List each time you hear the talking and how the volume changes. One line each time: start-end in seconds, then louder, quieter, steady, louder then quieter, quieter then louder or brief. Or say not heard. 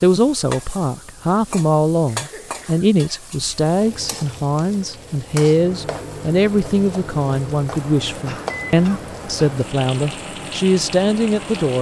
0.0-11.7 steady.